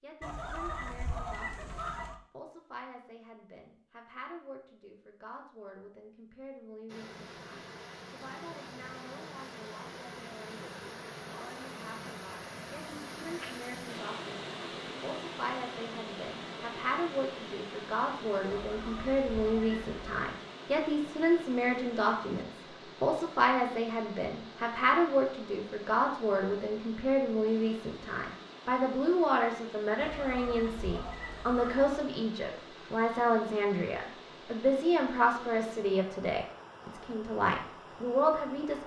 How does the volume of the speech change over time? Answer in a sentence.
The loudness of the speech goes up.